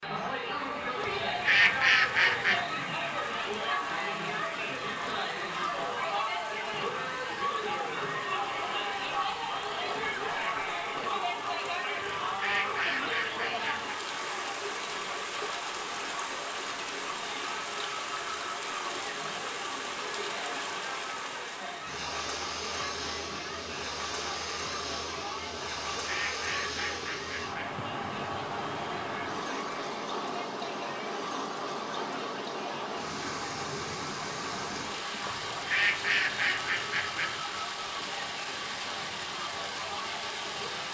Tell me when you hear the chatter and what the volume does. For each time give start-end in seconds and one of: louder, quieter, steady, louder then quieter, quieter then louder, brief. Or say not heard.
0.0-40.8 quieter.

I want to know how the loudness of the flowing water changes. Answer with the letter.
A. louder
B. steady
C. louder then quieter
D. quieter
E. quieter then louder
A.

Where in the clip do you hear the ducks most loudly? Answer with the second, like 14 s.
2 s.